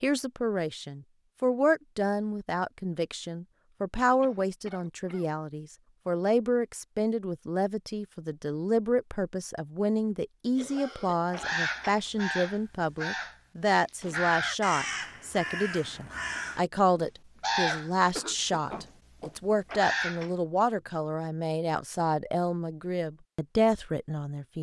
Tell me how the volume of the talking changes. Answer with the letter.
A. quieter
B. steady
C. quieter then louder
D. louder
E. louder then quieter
B.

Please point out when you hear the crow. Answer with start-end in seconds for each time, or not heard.
11.3-20.3.